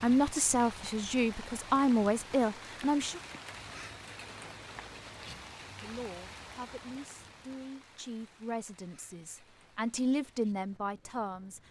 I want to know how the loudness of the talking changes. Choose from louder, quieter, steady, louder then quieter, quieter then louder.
quieter then louder.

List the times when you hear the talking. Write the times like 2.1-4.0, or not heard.
0.0-3.2, 5.8-11.6.